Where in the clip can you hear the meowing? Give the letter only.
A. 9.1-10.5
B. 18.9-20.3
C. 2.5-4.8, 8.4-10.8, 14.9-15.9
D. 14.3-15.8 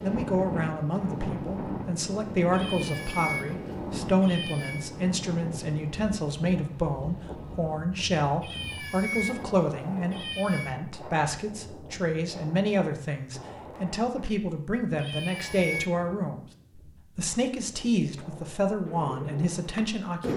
C.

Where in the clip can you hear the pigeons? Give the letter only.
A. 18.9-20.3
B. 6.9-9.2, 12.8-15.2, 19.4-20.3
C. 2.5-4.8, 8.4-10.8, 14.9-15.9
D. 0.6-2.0
A.